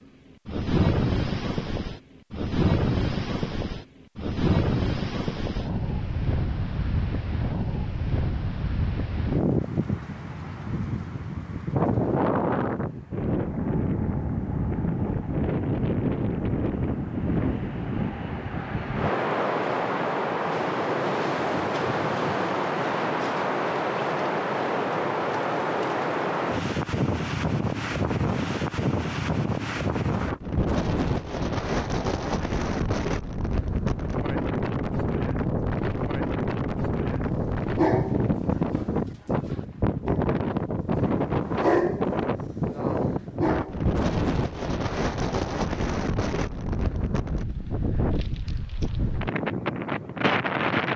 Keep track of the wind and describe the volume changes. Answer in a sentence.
The volume of the wind stays about the same.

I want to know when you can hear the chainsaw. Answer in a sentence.
The chainsaw can't be heard in this clip.